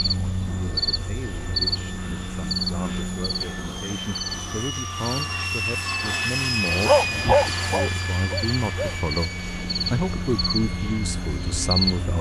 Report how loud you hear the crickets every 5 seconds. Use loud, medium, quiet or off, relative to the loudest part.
loud, medium, loud.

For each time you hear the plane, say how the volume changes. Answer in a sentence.
The plane can be heard from 0.0 to 12.1 s, getting louder then quieter.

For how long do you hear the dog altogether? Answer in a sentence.
You can hear the dog for 2 seconds altogether.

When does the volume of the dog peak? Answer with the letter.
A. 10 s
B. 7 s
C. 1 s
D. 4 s
B.